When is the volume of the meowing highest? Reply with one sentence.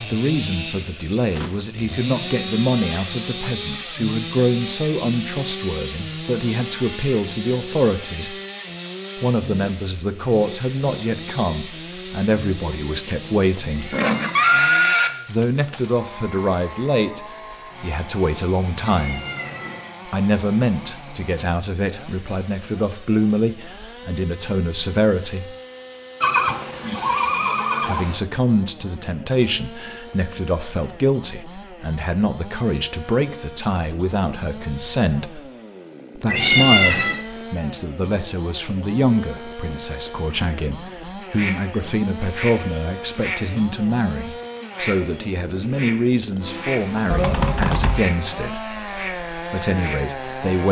The loudest moment of the meowing is at 37 seconds.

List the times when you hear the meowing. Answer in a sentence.
The meowing can be heard from 13.7 to 14.6 s, from 18.9 to 19.9 s and from 36.2 to 37.2 s.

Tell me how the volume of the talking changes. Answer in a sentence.
The volume of the talking stays about the same.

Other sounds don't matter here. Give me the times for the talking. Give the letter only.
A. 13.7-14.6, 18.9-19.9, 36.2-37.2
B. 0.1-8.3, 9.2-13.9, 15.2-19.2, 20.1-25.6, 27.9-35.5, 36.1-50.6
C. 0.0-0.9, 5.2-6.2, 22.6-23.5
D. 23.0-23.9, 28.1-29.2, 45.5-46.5
B.